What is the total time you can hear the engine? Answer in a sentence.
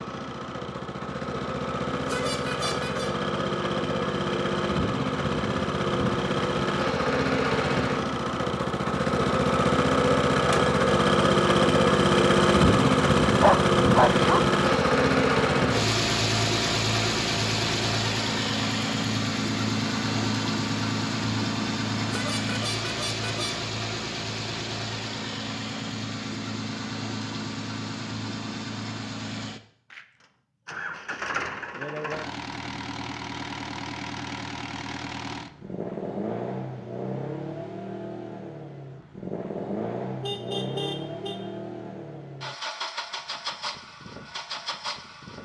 The engine can be heard for 45 seconds in total.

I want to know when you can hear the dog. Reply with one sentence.
You can hear the dog from 13.2 to 14.4 s.